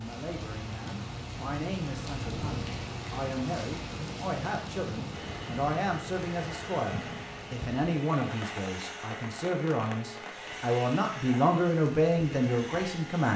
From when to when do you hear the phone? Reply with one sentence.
The phone can't be heard in this clip.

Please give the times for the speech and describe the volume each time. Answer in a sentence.
The speech can be heard from 0.0 to 13.3 s, getting louder.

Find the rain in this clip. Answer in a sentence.
The rain can be heard from 0.0 to 13.1 s.